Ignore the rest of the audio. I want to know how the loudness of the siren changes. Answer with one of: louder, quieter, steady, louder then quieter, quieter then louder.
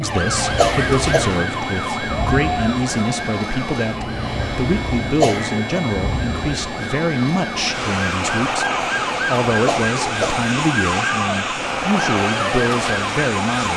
quieter then louder.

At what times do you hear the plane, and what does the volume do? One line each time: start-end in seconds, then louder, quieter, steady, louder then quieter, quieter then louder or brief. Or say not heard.
0.0-13.7 steady.